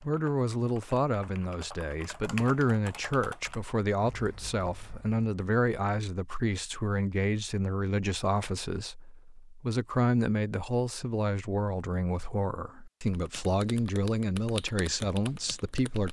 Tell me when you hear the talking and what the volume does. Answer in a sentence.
The talking can be heard from 0.0 to 16.0 s, at a steady volume.